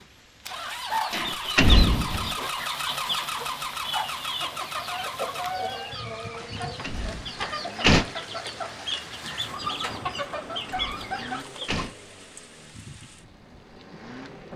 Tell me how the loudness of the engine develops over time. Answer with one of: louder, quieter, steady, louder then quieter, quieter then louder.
quieter.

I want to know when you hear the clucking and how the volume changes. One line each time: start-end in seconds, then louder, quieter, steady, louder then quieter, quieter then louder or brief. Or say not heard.
0.7-11.8 steady.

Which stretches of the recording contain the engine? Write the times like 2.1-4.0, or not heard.
0.0-14.5.